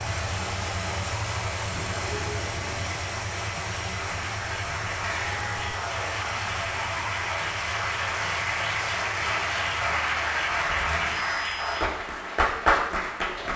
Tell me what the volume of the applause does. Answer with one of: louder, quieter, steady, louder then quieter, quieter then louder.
louder.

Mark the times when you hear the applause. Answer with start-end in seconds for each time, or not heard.
0.0-13.5.